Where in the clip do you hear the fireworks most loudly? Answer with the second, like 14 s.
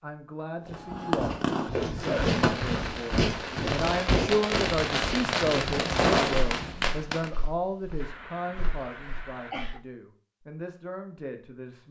6 s.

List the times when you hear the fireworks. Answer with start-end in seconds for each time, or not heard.
0.8-7.3.